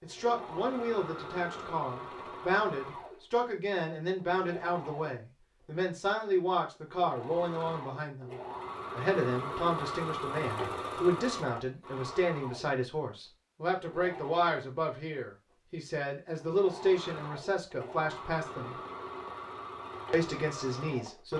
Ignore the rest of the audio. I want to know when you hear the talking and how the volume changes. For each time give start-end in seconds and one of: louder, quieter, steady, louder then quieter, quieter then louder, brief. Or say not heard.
0.0-18.8 steady
20.1-21.3 brief.